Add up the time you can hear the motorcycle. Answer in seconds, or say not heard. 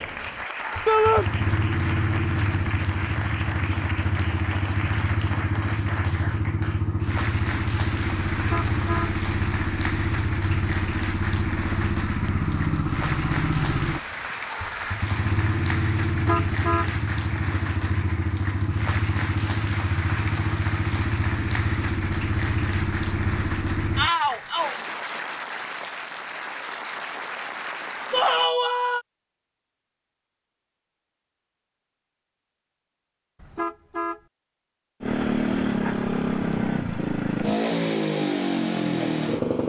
29 s.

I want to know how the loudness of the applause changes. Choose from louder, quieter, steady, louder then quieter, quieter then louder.
steady.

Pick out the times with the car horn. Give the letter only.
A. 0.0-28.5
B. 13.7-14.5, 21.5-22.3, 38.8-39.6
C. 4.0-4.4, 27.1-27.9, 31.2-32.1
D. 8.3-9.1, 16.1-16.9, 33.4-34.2
D.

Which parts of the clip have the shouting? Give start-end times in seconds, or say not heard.
0.8-1.2, 23.9-24.8, 28.1-29.0.